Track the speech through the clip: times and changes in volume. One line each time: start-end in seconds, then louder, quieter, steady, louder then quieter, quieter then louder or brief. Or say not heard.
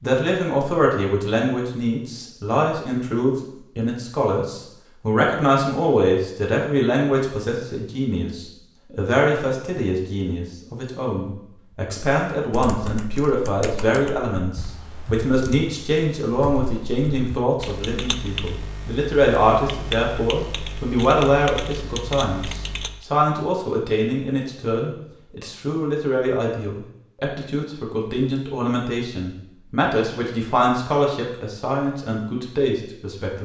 0.0-33.3 steady.